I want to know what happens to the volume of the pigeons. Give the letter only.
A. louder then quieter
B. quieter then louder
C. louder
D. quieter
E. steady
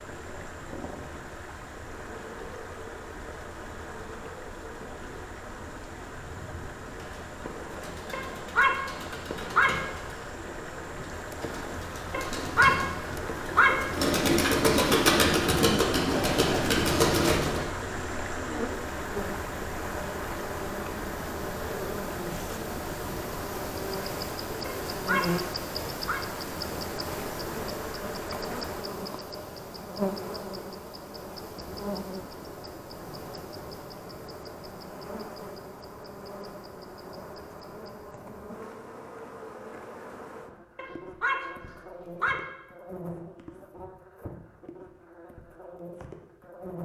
C.